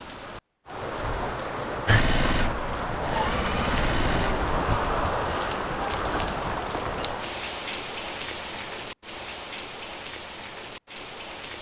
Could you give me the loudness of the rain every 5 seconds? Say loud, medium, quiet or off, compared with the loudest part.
loud, loud, medium.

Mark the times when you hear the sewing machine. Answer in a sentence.
The sewing machine can be heard from 1.9 to 4.5 s.